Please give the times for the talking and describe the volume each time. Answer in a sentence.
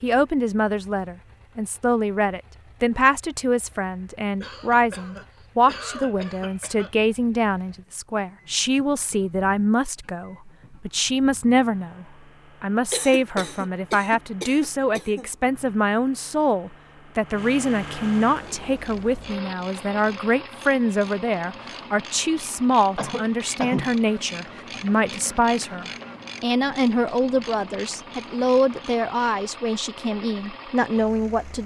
You can hear the talking from 0.0 to 31.6 s, at a steady volume.